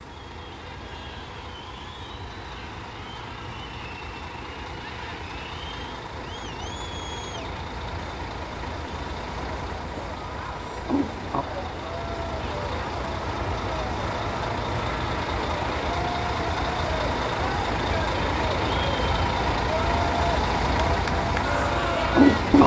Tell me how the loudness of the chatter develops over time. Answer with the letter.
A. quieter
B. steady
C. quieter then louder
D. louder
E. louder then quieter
D.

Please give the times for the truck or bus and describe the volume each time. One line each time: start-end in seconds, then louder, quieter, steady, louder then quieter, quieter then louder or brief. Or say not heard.
0.0-22.6 louder.